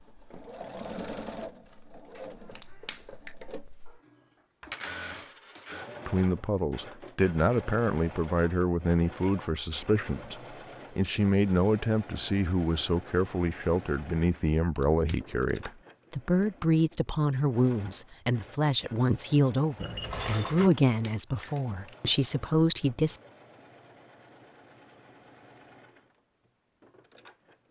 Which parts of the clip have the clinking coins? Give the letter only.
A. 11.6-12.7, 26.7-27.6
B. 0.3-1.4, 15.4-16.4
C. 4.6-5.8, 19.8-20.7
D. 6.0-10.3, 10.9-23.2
C.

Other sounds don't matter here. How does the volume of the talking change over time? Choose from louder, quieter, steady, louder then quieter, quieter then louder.
steady.